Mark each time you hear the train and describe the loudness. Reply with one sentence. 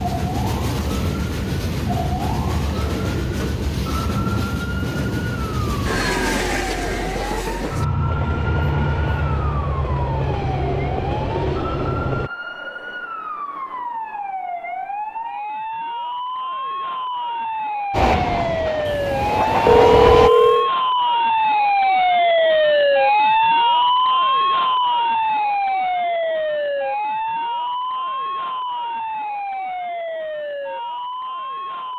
The train can be heard from 0.0 to 12.3 s, at a steady volume; and briefly from 17.9 to 20.3 s.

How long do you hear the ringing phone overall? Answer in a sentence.
You can hear the ringing phone for 2 seconds altogether.